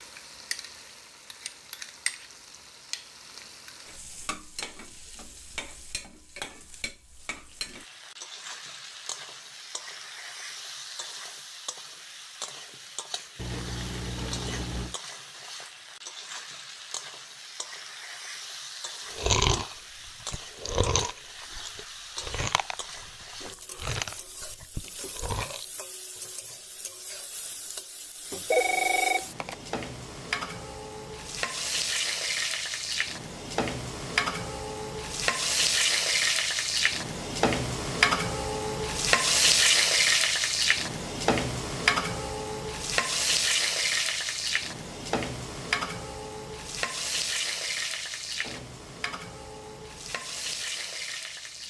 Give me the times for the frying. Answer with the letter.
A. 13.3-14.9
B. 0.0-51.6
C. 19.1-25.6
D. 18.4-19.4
B.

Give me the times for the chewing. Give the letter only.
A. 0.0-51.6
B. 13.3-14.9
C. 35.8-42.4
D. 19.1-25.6
D.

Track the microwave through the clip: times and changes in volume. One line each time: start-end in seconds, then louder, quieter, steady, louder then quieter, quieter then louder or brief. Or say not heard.
not heard.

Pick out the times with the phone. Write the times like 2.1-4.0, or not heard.
28.5-29.6.